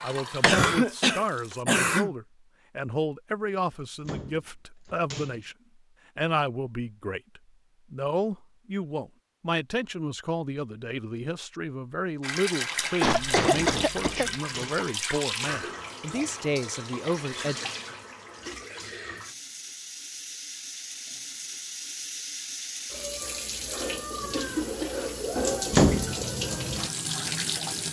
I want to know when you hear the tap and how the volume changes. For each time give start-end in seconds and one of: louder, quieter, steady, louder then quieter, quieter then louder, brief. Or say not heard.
0.0-1.6 brief
12.2-27.8 quieter then louder.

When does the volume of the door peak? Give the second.
26 s.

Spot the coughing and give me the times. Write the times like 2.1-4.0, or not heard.
0.4-2.1, 13.0-14.3, 24.3-24.9.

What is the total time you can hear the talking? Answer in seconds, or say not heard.
17 s.